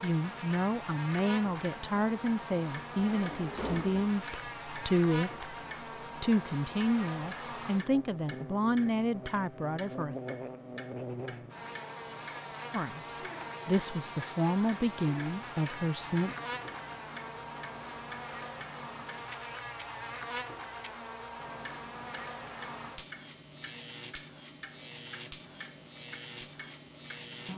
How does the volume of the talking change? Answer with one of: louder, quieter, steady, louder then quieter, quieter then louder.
steady.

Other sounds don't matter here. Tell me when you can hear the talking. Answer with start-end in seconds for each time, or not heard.
0.0-5.5, 6.2-10.2, 12.7-16.4.